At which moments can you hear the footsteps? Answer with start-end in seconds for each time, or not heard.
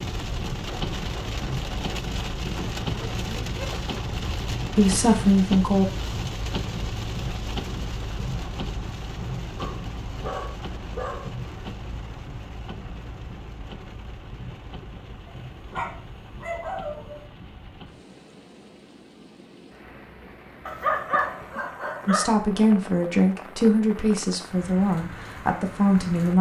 not heard.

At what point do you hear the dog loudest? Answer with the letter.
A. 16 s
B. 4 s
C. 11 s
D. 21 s
D.